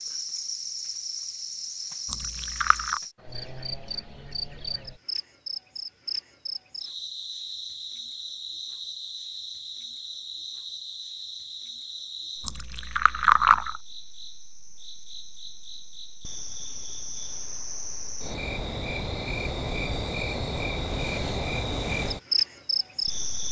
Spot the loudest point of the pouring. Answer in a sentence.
The loudest moment of the pouring is at 13 seconds.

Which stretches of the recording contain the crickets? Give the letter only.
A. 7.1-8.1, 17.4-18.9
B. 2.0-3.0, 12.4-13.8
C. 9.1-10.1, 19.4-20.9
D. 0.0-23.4
D.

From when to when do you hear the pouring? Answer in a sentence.
You can hear the pouring from 2.0 to 3.0 s and from 12.4 to 13.8 s.